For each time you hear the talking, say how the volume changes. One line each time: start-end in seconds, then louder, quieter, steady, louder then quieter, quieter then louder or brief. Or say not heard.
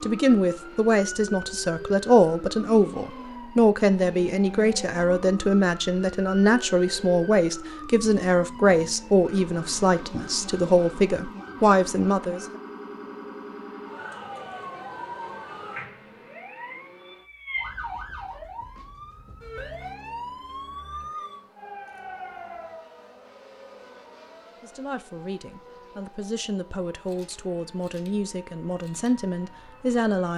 0.0-12.4 steady
24.6-30.3 louder.